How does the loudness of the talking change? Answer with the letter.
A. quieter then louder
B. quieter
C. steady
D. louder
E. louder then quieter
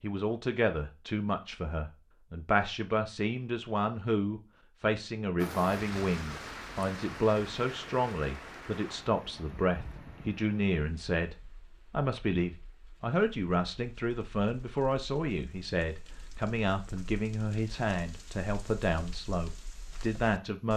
C.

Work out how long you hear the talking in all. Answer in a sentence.
The talking can be heard for 21 seconds in total.